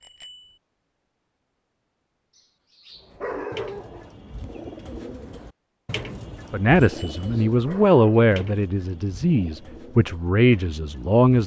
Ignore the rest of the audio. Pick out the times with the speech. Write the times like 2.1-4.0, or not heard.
6.5-11.4.